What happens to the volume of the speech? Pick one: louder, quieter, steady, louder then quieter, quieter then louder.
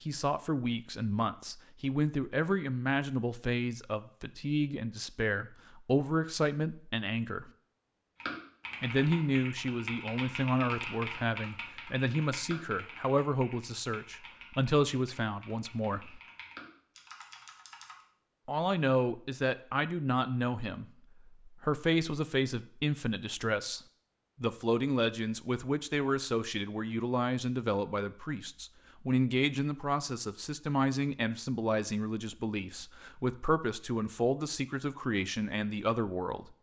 steady.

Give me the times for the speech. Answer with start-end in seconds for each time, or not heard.
0.0-7.5, 8.8-16.2, 18.4-23.8, 24.4-36.5.